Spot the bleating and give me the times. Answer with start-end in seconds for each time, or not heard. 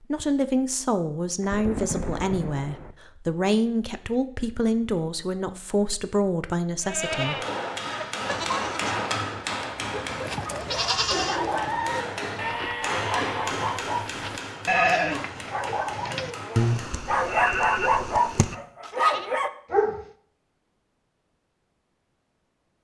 6.8-19.3.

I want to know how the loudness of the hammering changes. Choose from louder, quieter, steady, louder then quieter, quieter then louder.
quieter.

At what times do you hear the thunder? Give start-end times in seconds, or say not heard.
1.4-3.0.